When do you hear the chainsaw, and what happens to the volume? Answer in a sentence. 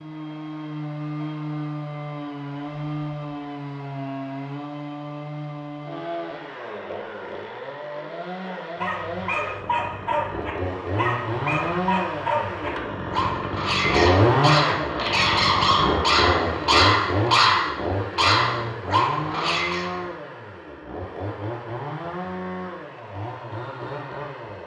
The chainsaw can be heard from 0.0 to 24.6 s, getting louder then quieter.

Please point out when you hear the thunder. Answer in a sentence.
You can't hear the thunder here.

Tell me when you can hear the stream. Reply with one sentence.
You can't hear the stream here.